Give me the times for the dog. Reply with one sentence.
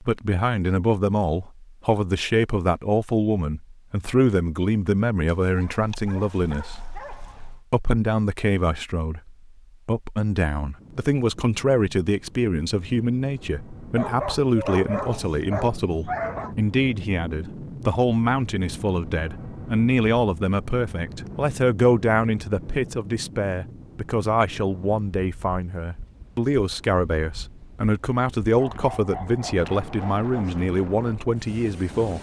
The dog can be heard from 5.3 to 7.7 s, from 13.9 to 16.6 s and from 28.6 to 30.6 s.